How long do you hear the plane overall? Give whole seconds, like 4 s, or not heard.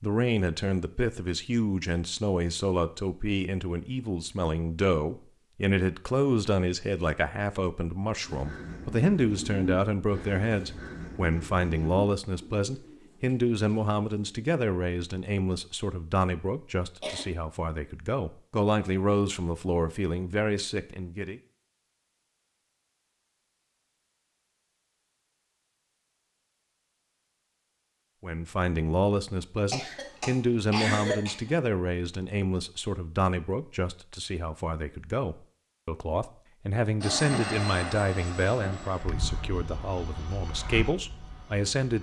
5 s.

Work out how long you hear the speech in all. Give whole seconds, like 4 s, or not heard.
35 s.